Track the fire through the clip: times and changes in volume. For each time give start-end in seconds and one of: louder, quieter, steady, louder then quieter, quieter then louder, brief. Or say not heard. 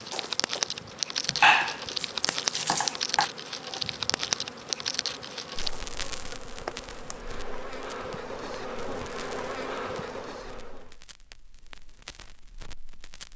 0.0-13.3 quieter.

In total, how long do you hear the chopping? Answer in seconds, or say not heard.
2 s.